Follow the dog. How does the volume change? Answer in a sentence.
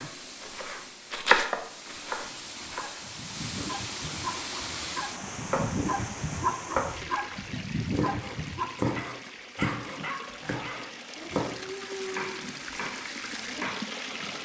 The loudness of the dog goes up, then down.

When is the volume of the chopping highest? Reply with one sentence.
The volume of the chopping peaks at 1 second.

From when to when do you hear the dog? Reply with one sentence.
You can hear the dog from 2.6 to 13.7 s.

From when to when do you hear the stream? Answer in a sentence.
The stream can be heard from 0.0 to 14.4 s.